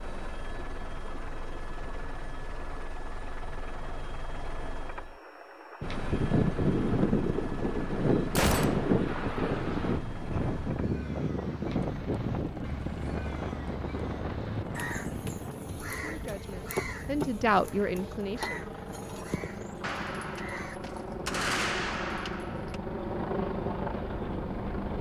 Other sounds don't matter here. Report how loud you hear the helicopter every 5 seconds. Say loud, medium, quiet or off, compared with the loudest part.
medium, medium, medium, medium, loud.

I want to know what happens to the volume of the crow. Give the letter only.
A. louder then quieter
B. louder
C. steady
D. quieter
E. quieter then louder
A.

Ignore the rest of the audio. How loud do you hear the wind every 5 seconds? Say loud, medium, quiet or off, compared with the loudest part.
off, loud, medium, quiet, quiet.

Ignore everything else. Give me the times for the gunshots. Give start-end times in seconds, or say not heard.
8.3-8.9, 19.8-22.8.